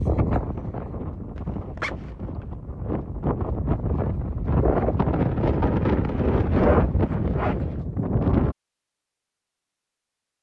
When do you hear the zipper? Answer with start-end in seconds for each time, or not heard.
1.4-2.1, 6.1-7.7.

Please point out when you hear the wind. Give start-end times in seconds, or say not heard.
0.0-8.6.